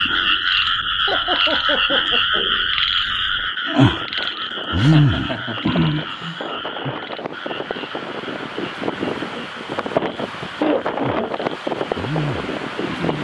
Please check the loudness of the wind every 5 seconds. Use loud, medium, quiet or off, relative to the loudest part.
quiet, loud, loud.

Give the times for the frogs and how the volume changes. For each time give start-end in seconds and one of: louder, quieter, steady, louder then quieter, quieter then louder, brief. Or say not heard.
0.0-13.1 quieter then louder.